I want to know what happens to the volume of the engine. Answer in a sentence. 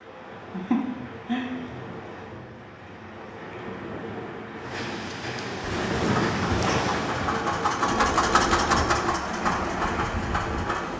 The volume of the engine goes up, then down.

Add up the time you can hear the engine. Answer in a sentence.
You can hear the engine for 5 seconds altogether.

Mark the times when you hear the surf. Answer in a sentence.
You can hear the surf from 0.0 to 10.9 s.